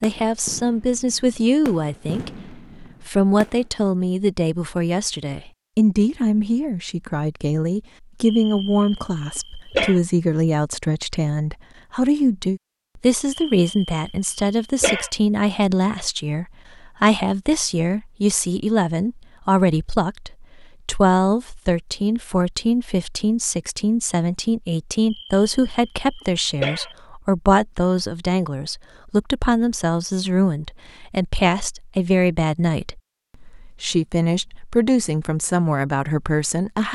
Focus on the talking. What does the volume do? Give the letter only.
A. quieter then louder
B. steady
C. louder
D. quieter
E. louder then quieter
B.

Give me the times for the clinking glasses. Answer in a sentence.
The clinking glasses can't be heard in this clip.